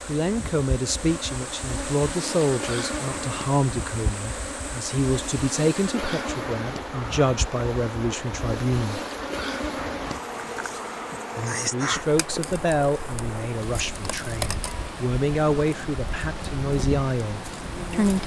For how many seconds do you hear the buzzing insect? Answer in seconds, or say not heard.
18 s.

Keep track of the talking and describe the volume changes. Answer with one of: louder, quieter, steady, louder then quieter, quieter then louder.
steady.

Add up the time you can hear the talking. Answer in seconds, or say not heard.
16 s.